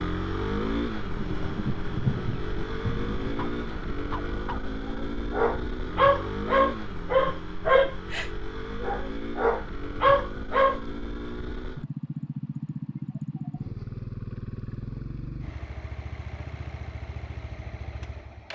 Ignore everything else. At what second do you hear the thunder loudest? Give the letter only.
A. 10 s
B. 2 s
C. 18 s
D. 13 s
B.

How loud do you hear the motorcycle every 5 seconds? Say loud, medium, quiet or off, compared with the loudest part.
loud, loud, loud, medium.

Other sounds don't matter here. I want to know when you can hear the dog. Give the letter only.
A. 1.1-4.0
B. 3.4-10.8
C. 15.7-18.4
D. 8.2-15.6
B.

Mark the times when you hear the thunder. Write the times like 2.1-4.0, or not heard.
1.1-4.0.